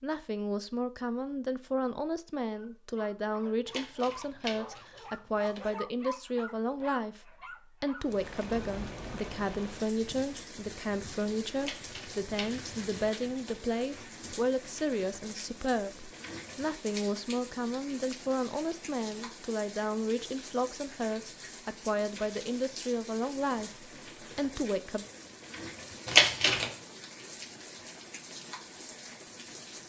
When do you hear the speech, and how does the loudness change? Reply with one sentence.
The speech can be heard from 0.0 to 25.1 s, at a steady volume.